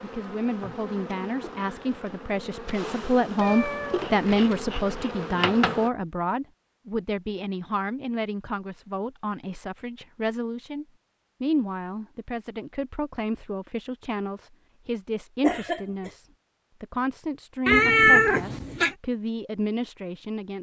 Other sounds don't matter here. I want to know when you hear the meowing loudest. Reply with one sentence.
The volume of the meowing peaks at 18 seconds.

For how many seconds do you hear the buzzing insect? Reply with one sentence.
You can hear the buzzing insect for 6 seconds altogether.